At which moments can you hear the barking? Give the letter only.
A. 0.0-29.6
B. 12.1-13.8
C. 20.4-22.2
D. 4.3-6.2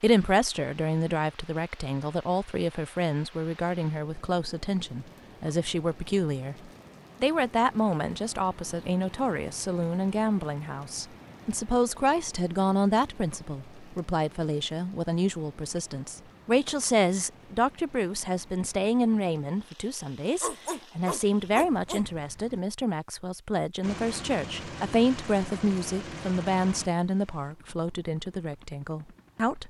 C.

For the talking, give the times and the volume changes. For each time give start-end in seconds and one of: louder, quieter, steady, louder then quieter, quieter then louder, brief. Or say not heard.
0.0-29.6 steady.